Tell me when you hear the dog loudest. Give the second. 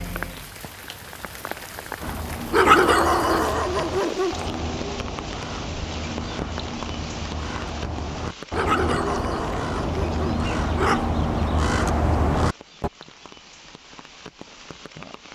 3 s.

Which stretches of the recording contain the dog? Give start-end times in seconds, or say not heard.
2.5-4.4, 8.5-11.1.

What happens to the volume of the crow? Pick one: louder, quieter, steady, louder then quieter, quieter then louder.
louder.